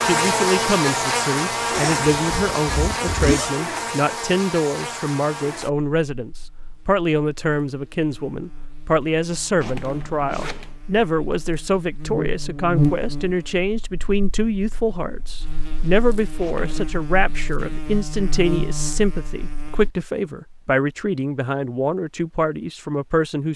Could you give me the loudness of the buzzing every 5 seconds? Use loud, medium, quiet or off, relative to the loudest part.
loud, quiet, medium, medium, off.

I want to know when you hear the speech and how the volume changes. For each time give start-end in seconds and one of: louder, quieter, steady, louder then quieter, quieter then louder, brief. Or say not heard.
0.0-23.5 steady.